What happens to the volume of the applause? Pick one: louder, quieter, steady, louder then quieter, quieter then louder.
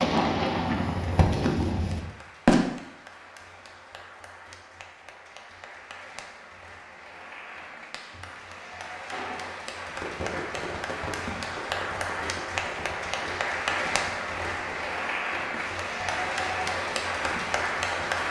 louder.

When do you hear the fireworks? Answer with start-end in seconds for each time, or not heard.
0.0-2.6, 9.1-18.2.